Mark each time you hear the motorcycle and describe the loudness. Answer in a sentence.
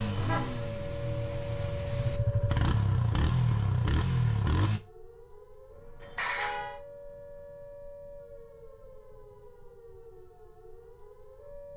The motorcycle can be heard from 0.0 to 4.8 s, getting louder.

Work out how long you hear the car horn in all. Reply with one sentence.
You can hear the car horn for 3 seconds altogether.